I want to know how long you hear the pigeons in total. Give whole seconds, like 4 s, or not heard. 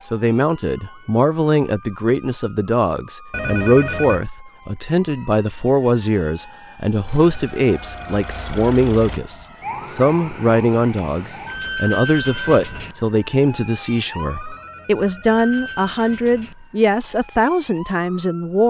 not heard.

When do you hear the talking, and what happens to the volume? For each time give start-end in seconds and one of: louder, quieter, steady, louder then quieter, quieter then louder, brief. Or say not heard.
0.1-18.6 steady.